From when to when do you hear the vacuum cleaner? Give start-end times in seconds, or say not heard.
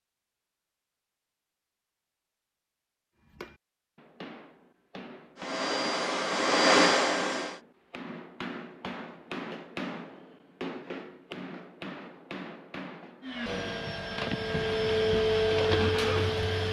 5.3-7.6, 13.2-16.6.